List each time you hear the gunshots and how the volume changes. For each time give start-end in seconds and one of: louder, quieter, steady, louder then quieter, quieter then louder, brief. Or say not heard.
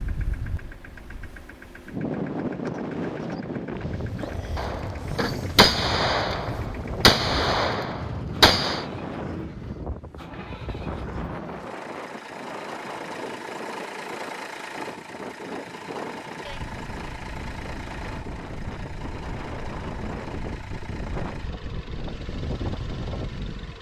4.5-8.8 quieter then louder.